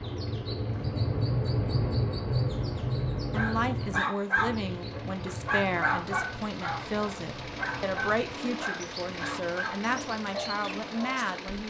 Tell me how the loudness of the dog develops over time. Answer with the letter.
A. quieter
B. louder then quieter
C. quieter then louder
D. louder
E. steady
A.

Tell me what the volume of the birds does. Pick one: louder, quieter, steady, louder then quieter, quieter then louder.
quieter.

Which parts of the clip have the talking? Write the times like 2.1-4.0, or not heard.
3.3-11.6.